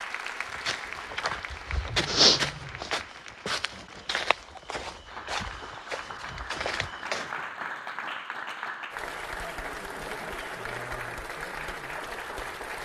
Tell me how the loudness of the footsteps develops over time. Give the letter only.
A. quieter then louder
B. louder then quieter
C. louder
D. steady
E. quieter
B.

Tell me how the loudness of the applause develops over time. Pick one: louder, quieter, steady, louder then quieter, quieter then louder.
quieter then louder.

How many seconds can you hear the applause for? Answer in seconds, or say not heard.
13 s.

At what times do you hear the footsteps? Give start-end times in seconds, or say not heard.
0.5-7.4.